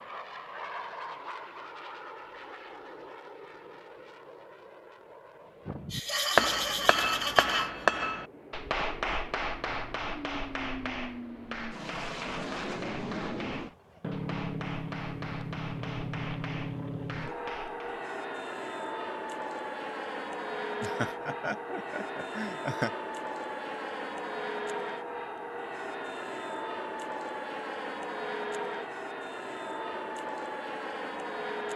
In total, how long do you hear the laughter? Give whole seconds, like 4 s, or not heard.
4 s.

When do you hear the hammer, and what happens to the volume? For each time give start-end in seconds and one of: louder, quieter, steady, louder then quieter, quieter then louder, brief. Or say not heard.
5.7-18.0 quieter.